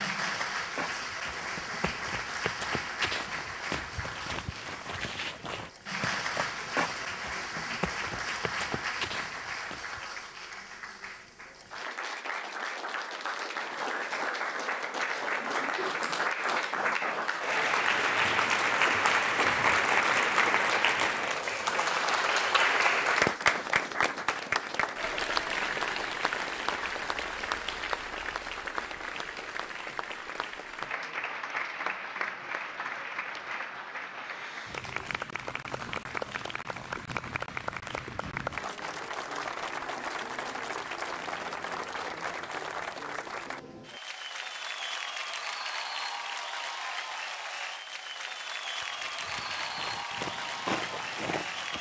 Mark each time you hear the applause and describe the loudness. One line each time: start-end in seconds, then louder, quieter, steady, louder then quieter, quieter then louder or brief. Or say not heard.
0.0-51.7 louder then quieter.